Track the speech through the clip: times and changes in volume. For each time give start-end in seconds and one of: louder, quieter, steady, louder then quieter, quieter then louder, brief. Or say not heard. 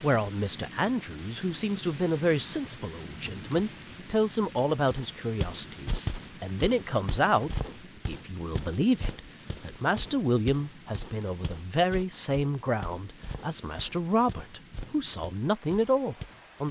0.0-16.6 steady.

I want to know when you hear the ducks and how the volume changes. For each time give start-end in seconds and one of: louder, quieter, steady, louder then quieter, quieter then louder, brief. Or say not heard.
not heard.